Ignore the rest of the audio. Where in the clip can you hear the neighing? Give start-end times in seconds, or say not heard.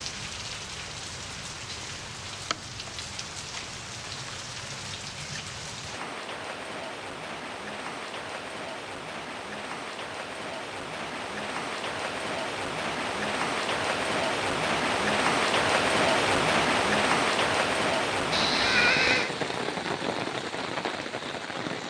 18.3-19.3.